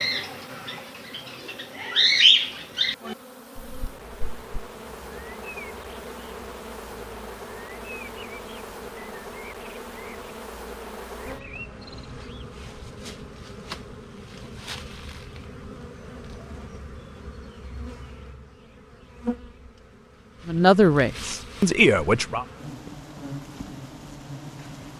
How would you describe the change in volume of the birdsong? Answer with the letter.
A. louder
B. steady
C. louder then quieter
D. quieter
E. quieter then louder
D.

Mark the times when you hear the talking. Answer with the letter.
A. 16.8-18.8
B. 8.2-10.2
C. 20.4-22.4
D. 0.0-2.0
C.